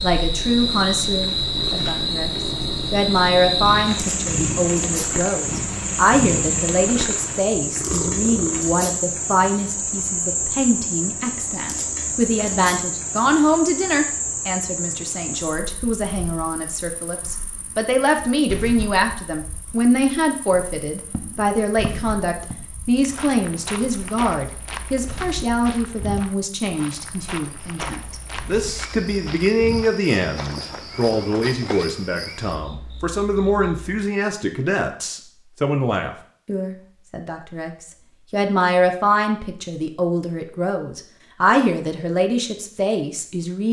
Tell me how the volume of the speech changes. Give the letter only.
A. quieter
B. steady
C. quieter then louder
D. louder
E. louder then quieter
B.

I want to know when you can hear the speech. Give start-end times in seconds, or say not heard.
0.0-43.6.